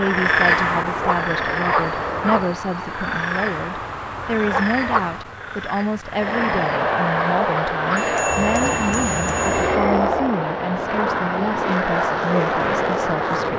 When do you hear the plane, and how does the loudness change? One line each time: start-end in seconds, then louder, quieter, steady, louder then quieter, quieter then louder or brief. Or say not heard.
0.0-2.5 brief
6.1-13.5 steady.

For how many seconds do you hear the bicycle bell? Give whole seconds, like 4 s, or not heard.
2 s.